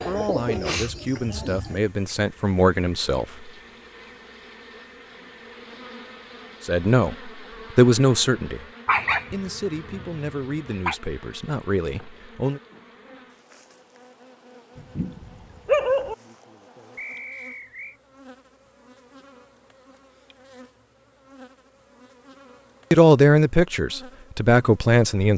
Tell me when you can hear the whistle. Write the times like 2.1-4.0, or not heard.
16.9-17.9.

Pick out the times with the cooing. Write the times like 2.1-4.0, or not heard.
0.0-1.8.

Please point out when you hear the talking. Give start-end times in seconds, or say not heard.
0.1-3.5, 6.7-8.7, 9.3-12.6, 22.9-25.3.